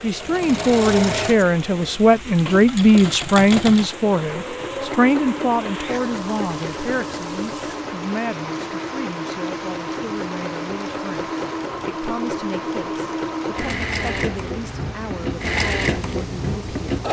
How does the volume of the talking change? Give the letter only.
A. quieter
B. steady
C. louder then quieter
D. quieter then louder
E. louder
A.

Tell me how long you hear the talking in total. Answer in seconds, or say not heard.
17 s.